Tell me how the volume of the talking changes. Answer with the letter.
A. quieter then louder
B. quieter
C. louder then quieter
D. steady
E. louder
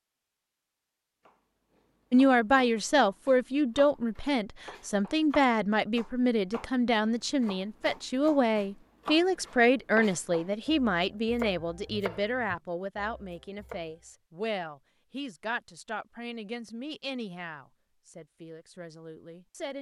B.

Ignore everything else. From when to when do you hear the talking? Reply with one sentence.
The talking can be heard from 2.1 to 19.7 s.